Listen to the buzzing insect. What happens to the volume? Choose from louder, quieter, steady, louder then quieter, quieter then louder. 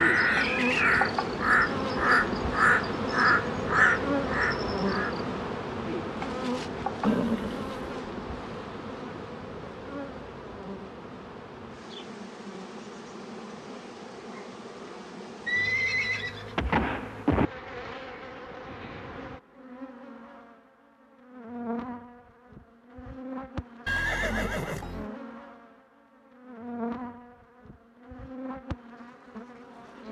quieter.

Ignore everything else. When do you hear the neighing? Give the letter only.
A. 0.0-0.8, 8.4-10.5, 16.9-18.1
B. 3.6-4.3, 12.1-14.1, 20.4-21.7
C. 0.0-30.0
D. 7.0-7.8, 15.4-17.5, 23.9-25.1
D.